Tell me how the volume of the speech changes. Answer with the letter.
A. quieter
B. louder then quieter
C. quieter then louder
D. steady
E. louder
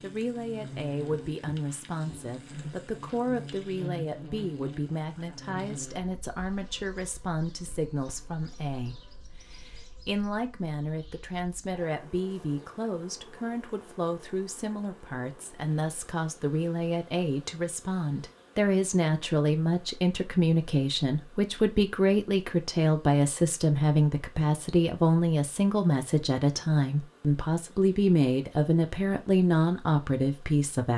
E.